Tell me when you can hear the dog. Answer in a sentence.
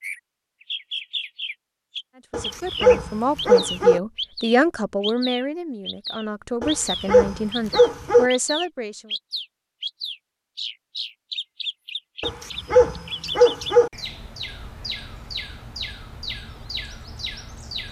You can hear the dog from 2.3 to 4.0 s, from 6.6 to 8.3 s and from 12.2 to 13.9 s.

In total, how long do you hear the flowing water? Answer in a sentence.
You can't hear the flowing water here.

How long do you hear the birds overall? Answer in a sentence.
You can hear the birds for 18 seconds altogether.